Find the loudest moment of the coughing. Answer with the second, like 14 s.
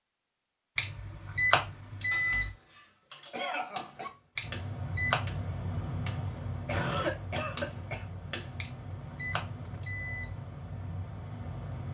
7 s.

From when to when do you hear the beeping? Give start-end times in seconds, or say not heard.
0.8-2.5, 4.3-5.3, 8.6-10.3.